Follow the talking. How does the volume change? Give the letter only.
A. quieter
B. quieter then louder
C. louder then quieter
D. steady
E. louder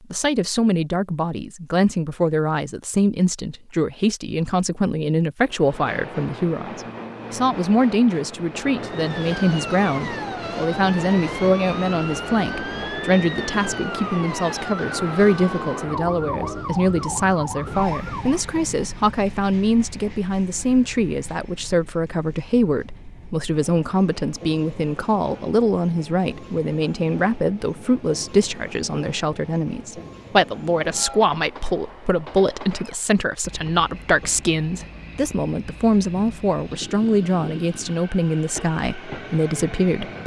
D.